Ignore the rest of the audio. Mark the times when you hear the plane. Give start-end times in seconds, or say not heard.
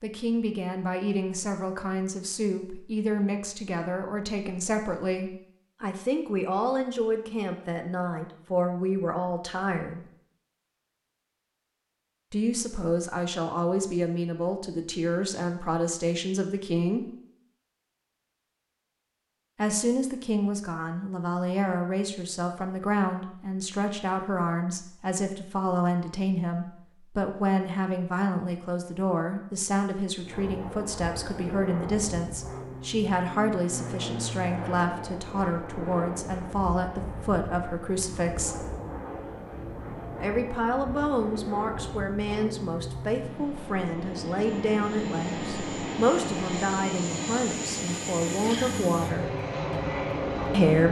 30.2-50.8.